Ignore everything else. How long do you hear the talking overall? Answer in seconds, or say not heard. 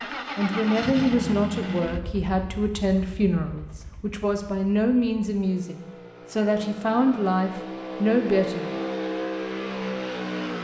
8 s.